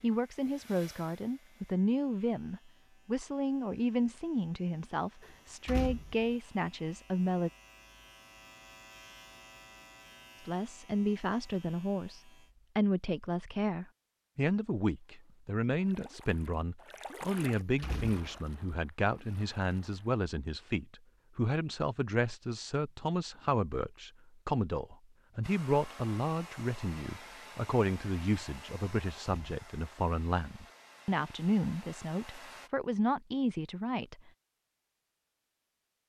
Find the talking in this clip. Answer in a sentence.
You can hear the talking from 0.0 to 7.5 s and from 10.4 to 34.3 s.